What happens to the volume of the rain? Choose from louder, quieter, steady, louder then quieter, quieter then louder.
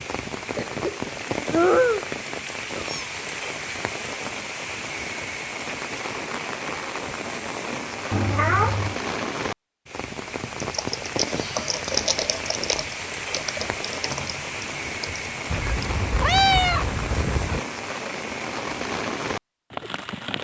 steady.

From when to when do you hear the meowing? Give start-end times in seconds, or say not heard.
1.5-3.0, 8.1-8.9, 15.5-17.6.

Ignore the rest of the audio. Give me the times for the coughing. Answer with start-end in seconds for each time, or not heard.
0.6-1.7.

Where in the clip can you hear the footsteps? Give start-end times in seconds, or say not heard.
not heard.